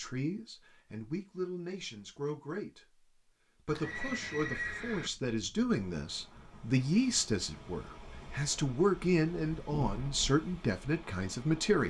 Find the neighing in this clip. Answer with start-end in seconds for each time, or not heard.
3.6-5.1.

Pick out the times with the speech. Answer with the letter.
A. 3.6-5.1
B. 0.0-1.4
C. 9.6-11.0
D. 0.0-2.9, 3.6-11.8
D.